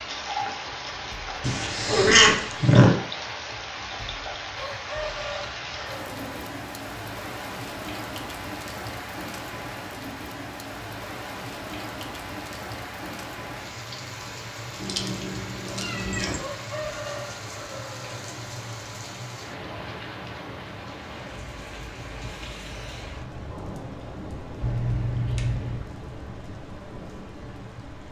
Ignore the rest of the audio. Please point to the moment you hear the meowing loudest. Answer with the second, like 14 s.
2 s.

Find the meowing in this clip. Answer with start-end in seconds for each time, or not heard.
1.4-2.9, 14.8-16.4, 24.6-25.8.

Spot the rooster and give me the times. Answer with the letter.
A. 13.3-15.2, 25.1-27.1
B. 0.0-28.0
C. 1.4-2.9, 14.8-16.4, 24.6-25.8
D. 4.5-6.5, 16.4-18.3
D.